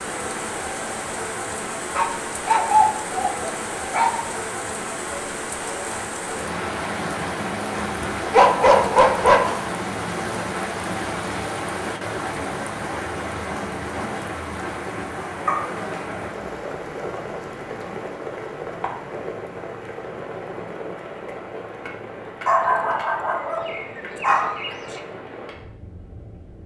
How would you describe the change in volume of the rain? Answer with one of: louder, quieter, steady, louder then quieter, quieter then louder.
quieter.